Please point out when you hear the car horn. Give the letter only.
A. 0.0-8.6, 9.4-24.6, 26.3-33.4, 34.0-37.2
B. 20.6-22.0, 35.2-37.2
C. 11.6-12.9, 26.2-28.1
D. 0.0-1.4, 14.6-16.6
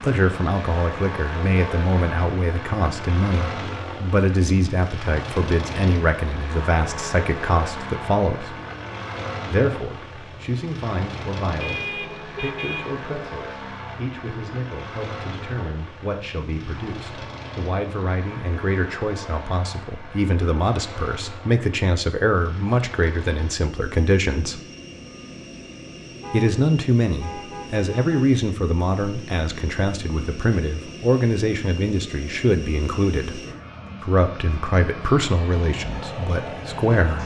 C.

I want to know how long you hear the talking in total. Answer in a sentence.
You can hear the talking for 34 seconds altogether.